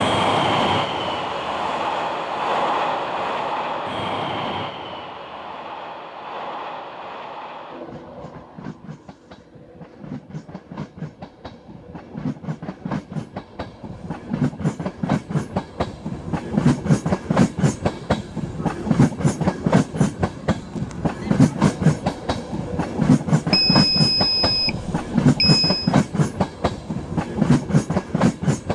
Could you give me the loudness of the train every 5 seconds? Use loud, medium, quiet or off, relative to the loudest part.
loud, quiet, medium, loud, loud, loud.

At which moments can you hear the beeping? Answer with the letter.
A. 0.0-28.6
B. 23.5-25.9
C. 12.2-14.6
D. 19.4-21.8
B.